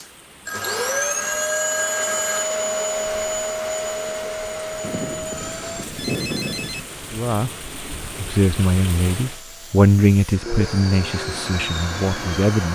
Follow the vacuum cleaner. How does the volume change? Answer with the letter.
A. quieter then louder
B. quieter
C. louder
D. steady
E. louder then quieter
A.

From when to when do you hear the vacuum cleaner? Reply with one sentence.
The vacuum cleaner can be heard from 0.0 to 12.7 s.